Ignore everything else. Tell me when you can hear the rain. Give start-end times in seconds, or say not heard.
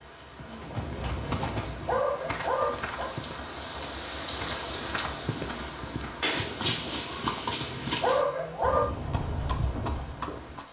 0.0-10.6.